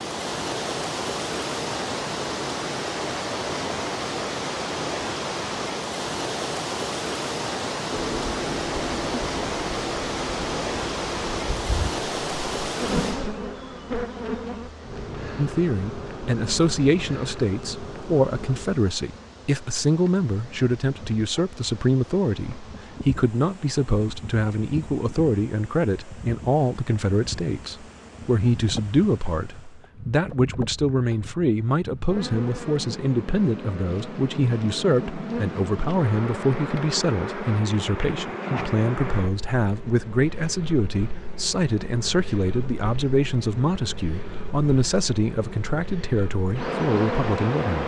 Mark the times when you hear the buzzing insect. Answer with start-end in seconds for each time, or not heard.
7.9-47.8.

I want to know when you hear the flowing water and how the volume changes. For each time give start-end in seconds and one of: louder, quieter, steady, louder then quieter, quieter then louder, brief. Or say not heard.
0.0-29.9 quieter.